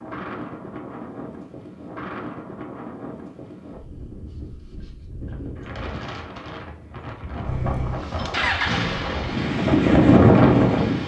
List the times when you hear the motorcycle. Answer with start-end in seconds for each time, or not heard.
7.5-11.0.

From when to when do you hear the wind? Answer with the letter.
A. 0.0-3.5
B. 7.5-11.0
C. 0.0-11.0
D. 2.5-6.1
C.